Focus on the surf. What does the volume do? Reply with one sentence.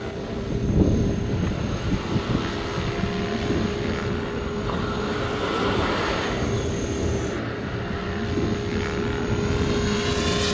The volume of the surf goes up, then down.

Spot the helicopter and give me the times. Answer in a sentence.
You can hear the helicopter from 0.0 to 10.5 s.